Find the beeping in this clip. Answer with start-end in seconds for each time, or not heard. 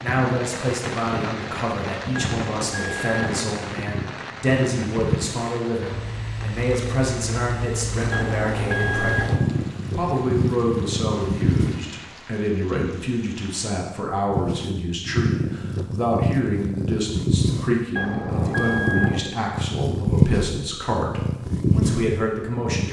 2.1-3.2, 8.1-9.3, 17.9-19.2.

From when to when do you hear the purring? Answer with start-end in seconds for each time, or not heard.
0.0-11.9, 14.2-22.8.